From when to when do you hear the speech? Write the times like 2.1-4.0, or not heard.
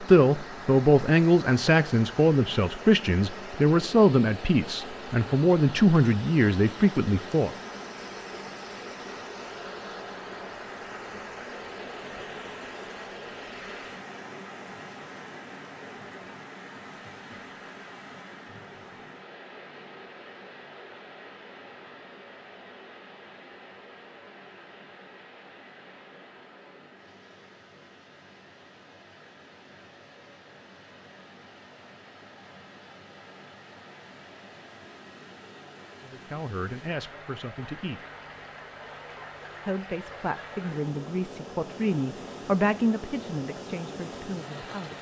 0.0-7.5, 36.0-38.0, 39.6-44.9.